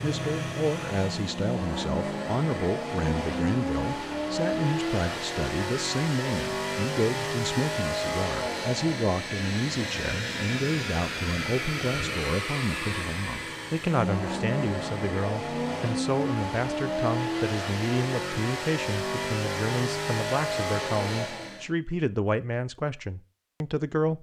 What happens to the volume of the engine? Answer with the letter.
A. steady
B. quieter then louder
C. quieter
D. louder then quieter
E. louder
A.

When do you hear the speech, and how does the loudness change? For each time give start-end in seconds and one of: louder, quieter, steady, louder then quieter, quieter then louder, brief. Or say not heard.
0.0-24.1 steady.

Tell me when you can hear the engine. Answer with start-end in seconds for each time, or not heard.
0.0-21.7.